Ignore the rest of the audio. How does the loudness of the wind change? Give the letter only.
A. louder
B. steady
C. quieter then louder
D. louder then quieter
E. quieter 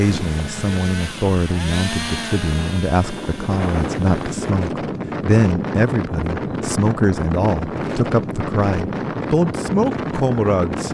A.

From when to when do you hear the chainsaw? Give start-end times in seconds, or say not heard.
0.0-4.5.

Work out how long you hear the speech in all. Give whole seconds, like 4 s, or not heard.
11 s.